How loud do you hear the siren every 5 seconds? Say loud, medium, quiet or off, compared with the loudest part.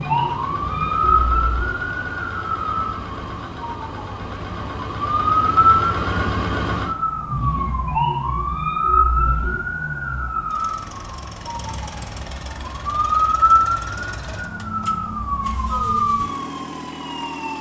loud, loud, loud, medium.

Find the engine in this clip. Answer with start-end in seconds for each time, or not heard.
0.0-17.5.